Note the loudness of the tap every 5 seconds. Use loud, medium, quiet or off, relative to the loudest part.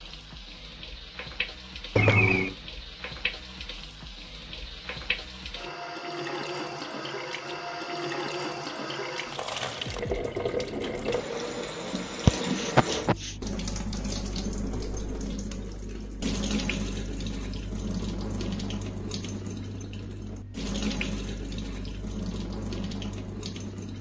medium, loud, loud, loud, loud.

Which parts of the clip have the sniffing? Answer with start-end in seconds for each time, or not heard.
1.9-2.5, 12.2-13.3.